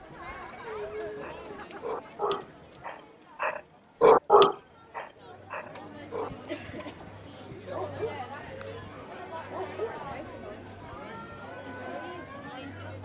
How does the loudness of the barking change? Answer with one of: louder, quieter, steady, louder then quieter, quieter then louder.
louder then quieter.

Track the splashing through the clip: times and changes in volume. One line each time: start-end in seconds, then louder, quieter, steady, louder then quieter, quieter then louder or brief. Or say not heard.
not heard.